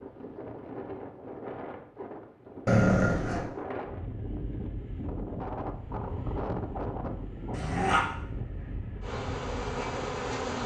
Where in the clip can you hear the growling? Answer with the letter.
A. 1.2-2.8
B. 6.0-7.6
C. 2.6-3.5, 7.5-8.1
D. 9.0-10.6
C.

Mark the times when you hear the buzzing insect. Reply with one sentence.
The buzzing insect can be heard from 9.0 to 10.6 s.